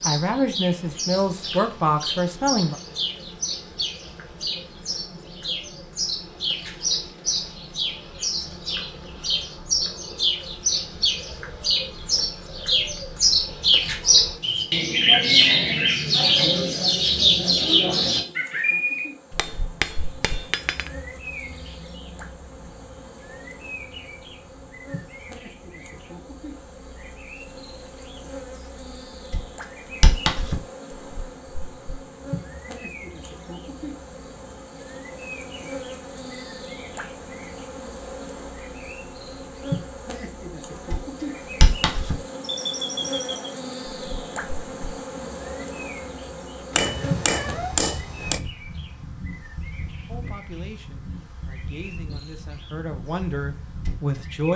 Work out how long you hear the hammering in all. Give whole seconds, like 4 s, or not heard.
3 s.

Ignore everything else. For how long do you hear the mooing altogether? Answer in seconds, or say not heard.
not heard.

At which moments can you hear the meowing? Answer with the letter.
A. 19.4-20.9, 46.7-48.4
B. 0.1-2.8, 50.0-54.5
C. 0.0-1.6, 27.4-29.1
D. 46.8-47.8
D.